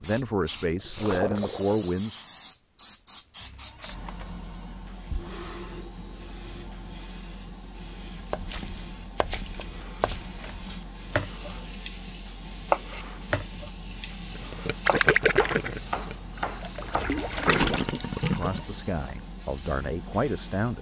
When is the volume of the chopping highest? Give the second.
13 s.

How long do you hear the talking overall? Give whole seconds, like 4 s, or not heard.
5 s.